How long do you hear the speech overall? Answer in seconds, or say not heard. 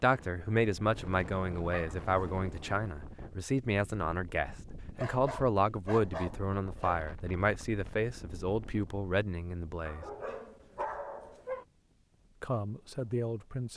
11 s.